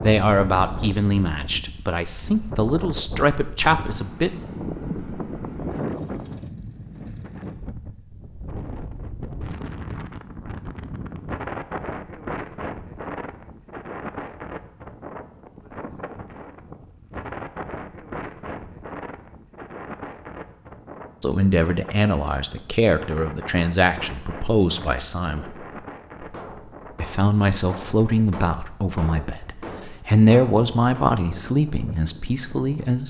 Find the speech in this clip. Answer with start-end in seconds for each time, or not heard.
0.0-4.3, 21.2-25.5, 27.0-33.0.